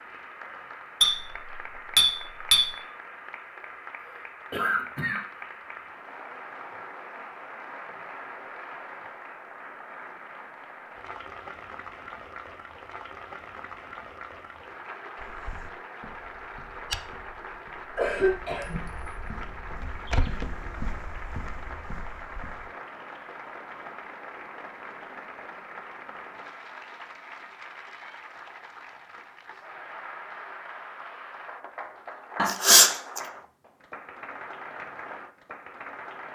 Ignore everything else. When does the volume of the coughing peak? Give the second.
33 s.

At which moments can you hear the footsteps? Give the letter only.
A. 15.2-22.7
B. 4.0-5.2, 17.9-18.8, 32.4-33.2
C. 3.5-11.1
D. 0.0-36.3
A.